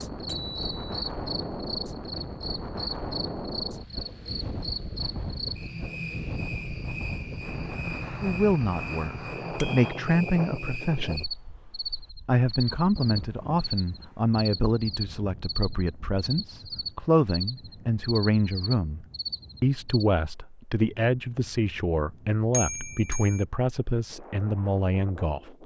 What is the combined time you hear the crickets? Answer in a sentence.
You can hear the crickets for 20 seconds altogether.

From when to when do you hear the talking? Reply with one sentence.
The talking can be heard from 8.2 to 11.2 s and from 12.2 to 25.6 s.